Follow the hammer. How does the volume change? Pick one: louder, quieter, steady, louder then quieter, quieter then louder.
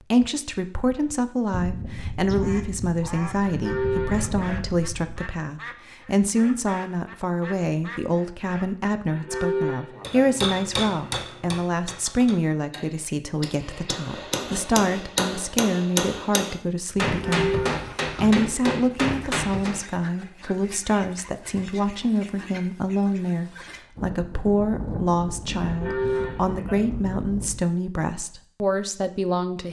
quieter then louder.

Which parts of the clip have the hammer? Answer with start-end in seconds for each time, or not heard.
10.0-19.8.